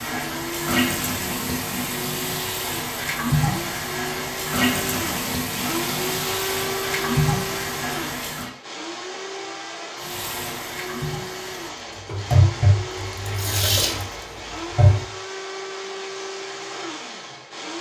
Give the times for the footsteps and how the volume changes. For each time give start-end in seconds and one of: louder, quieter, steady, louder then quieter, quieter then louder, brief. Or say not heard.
not heard.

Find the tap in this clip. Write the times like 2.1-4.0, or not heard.
0.0-8.5, 10.0-15.1.